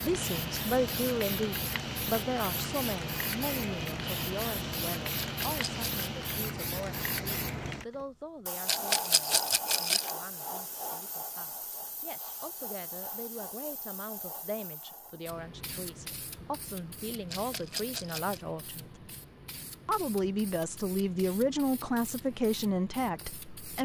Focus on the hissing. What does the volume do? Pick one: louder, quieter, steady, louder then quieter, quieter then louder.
quieter.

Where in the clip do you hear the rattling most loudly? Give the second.
9 s.